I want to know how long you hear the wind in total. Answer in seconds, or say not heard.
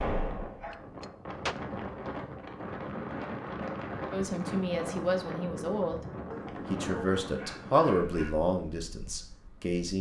10 s.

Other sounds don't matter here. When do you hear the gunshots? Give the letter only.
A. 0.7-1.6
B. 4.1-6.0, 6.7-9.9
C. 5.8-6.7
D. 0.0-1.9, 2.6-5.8
A.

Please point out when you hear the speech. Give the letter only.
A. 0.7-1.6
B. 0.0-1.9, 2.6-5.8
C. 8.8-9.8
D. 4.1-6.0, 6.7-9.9
D.